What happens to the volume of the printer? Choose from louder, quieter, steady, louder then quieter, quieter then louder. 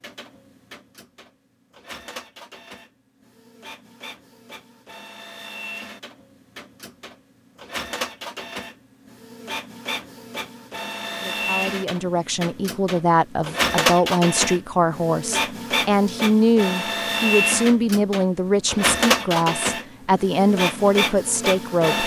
louder.